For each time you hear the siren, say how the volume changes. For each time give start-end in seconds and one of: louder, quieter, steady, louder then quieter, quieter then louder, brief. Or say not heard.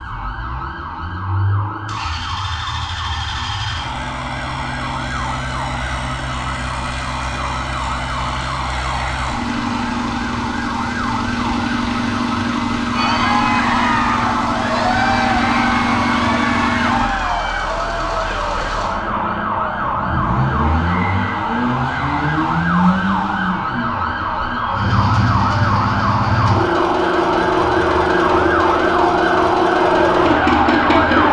0.0-31.2 louder.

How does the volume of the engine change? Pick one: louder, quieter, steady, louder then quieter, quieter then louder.
louder.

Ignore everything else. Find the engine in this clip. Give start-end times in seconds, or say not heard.
0.0-31.2.